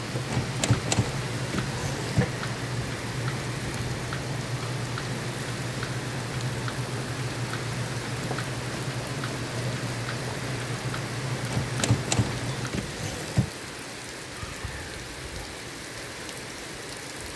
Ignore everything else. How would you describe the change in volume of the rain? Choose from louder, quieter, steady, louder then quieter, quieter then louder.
steady.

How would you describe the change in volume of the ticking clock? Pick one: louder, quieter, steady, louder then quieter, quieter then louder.
quieter.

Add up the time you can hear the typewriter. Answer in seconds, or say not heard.
4 s.